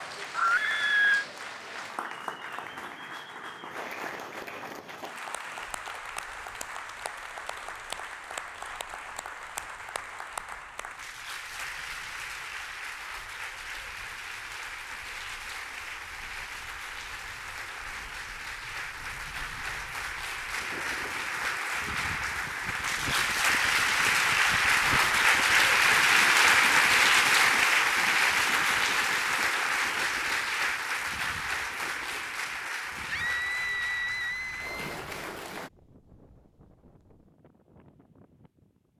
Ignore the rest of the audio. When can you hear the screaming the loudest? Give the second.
1 s.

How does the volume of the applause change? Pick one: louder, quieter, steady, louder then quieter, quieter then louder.
louder then quieter.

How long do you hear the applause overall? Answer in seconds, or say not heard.
36 s.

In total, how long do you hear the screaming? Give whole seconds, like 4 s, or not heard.
3 s.